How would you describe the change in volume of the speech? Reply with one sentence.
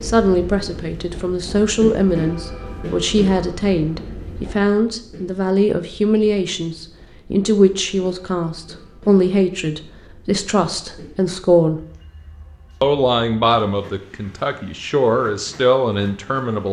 The loudness of the speech stays about the same.